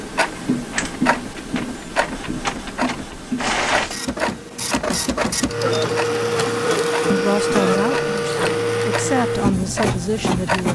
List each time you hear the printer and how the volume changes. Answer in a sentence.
The printer can be heard from 0.2 to 10.7 s, getting louder.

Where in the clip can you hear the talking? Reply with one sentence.
The talking can be heard from 7.1 to 10.7 s.